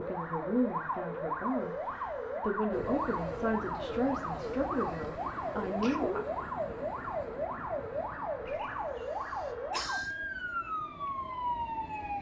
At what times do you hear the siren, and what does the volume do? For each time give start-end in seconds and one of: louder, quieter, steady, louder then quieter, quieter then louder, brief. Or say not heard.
0.0-12.1 steady.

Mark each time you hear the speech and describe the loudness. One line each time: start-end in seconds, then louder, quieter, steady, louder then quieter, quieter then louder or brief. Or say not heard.
0.0-6.2 steady.